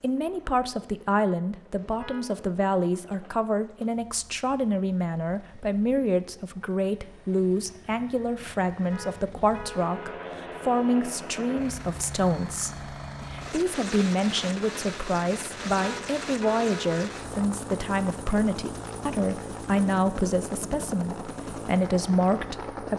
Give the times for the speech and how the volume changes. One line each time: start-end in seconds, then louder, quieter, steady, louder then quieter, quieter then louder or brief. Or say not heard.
0.0-22.9 steady.